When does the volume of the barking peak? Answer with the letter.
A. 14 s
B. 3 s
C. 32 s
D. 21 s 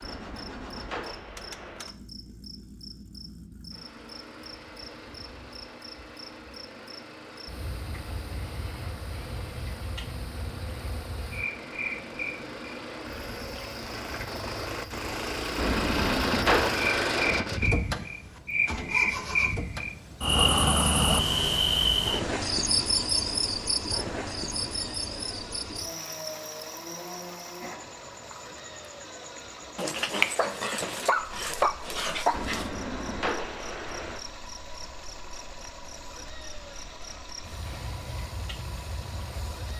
C.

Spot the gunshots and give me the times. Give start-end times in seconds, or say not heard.
0.0-1.9, 15.6-17.4, 32.3-34.2.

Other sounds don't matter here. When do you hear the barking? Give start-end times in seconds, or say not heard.
29.8-32.7.